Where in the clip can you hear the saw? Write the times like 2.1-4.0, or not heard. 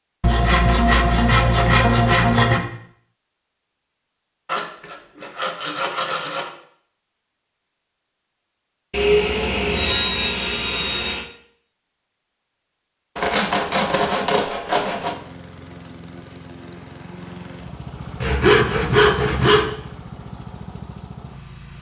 0.2-2.6, 4.5-6.5, 8.9-11.3, 13.2-15.2, 18.2-19.7.